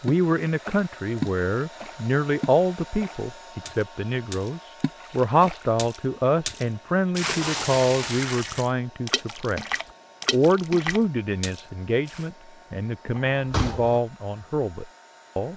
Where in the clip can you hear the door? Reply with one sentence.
The door can be heard from 13.2 to 14.0 s.